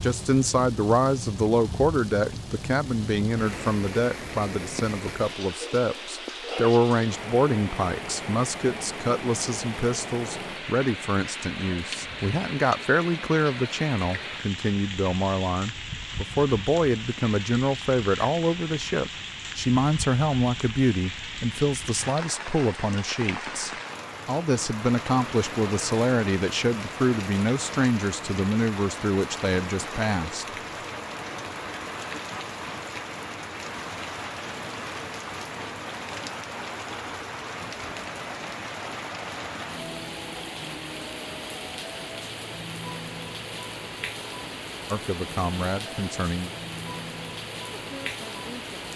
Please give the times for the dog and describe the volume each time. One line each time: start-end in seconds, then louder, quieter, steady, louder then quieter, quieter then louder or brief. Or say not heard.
not heard.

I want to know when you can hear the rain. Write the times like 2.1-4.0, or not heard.
0.0-48.9.